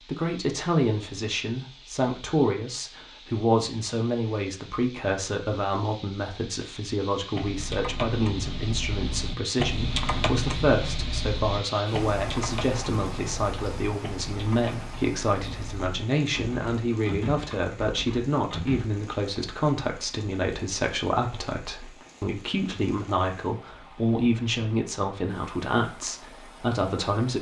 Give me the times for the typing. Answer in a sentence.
The typing can be heard from 7.3 to 18.9 s.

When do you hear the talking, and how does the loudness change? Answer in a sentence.
You can hear the talking from 0.1 to 27.3 s, at a steady volume.